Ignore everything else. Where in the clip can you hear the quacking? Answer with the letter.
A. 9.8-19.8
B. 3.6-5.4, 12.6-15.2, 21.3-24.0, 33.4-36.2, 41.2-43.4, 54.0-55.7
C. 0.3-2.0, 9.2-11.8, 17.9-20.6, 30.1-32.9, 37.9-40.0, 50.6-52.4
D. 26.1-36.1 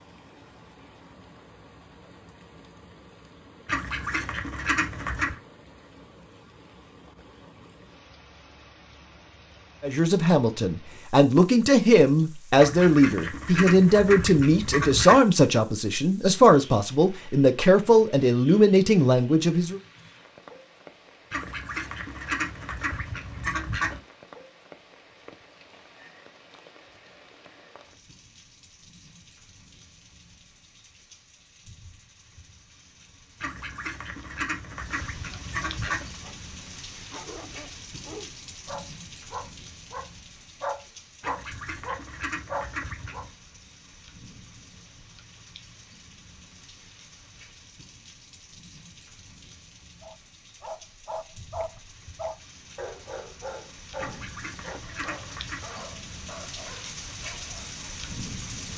B.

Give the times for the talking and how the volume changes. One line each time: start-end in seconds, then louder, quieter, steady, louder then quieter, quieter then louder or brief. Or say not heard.
9.8-19.8 steady.